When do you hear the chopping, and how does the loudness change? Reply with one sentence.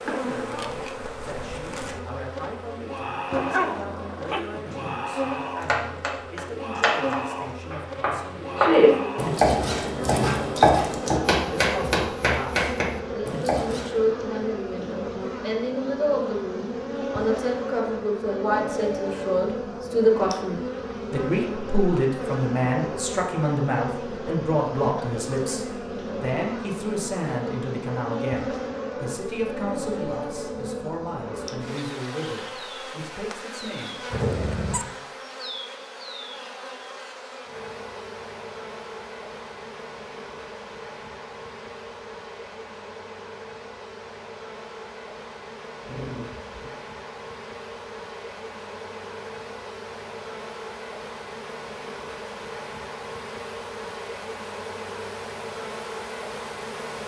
You can hear the chopping from 5.6 to 13.9 s, getting louder then quieter.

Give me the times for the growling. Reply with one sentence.
You can hear the growling from 3.3 to 5.0 s, from 34.1 to 34.9 s and from 45.8 to 46.7 s.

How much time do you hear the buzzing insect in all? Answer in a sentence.
You can hear the buzzing insect for 57 seconds altogether.